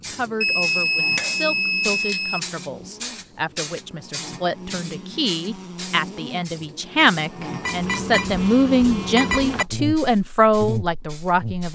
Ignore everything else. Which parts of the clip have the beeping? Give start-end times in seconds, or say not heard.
0.4-2.4, 7.6-9.7.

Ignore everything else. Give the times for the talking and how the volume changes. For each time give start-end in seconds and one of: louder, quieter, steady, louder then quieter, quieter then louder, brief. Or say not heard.
0.1-11.7 louder.